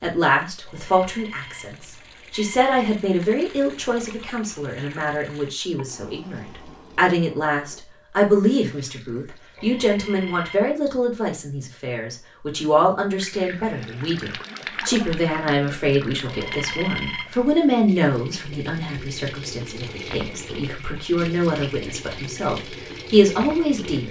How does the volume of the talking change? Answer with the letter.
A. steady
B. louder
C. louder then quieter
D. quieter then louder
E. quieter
A.